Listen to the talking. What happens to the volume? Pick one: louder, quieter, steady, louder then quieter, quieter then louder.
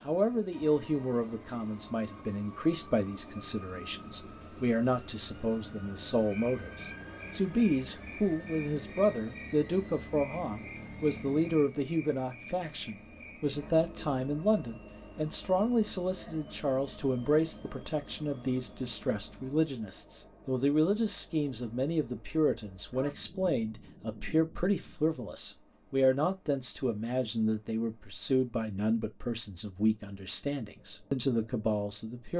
steady.